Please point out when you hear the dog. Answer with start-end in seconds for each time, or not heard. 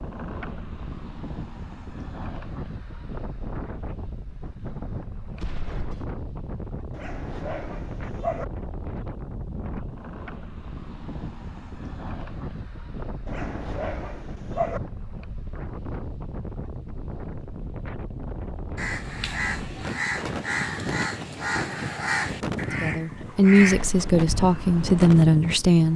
6.9-8.4, 13.2-14.8.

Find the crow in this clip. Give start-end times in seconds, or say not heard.
18.8-25.2.